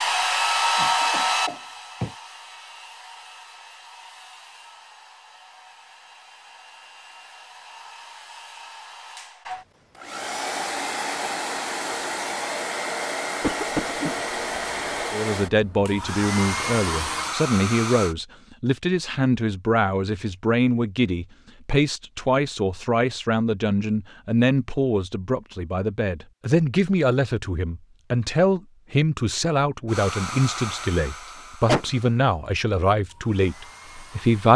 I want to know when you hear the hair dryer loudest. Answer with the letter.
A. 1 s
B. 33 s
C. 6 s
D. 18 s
A.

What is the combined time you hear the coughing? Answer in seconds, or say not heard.
4 s.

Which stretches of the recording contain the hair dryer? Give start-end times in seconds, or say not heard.
0.0-18.1, 29.9-34.5.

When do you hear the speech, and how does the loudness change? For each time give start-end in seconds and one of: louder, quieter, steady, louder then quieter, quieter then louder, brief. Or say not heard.
15.1-34.5 steady.